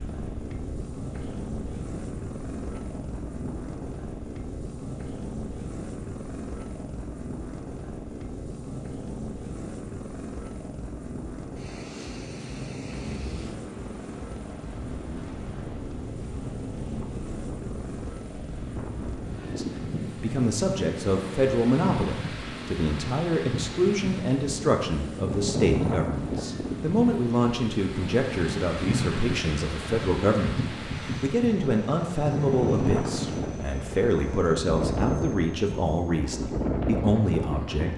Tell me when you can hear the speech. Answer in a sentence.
The speech can be heard from 19.4 to 37.9 s.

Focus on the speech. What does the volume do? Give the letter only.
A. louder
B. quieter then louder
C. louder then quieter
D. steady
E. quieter
D.